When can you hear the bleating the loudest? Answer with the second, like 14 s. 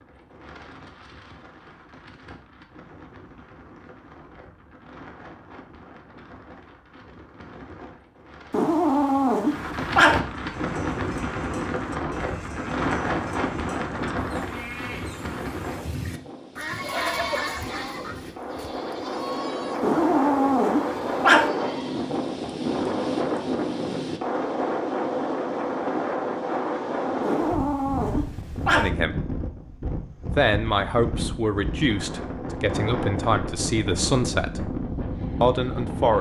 17 s.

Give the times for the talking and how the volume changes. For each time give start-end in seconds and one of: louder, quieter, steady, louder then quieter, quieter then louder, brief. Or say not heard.
28.7-29.1 brief
30.2-34.6 quieter then louder
35.4-36.1 brief.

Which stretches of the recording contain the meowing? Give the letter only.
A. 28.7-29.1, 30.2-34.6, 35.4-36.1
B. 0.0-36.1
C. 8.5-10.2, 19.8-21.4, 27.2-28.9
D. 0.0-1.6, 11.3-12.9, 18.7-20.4
C.